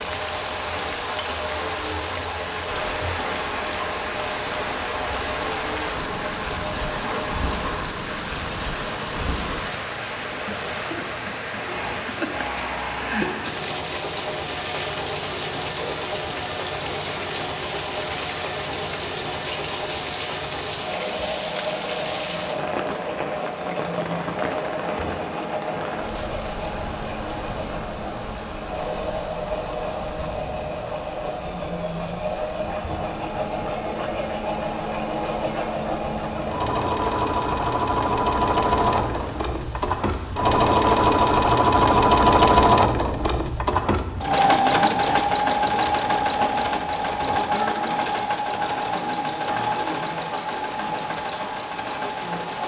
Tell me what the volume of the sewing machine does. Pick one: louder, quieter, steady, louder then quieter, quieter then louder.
louder.